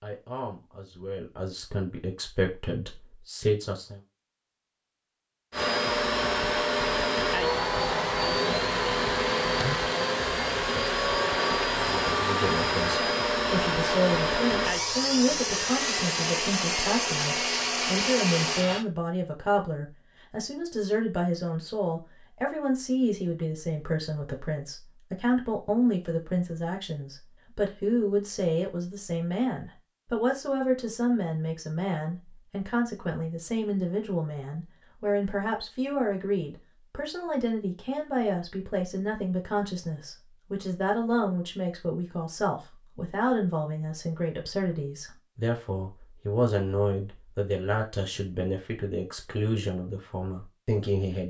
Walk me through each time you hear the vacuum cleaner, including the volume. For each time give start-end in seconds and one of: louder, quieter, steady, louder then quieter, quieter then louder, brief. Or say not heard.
5.5-18.9 steady.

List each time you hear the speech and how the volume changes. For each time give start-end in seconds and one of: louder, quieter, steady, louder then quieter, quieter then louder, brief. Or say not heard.
0.0-4.0 louder
11.8-51.2 steady.